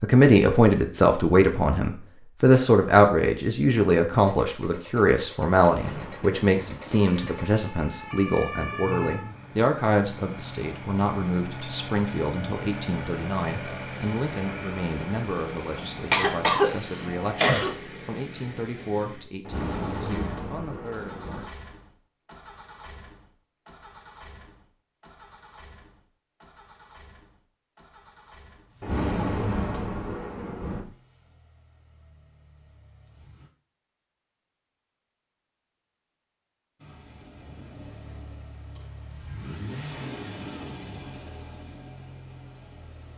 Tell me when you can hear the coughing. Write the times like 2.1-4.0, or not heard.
16.1-17.8.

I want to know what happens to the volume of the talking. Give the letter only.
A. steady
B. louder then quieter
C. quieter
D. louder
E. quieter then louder
C.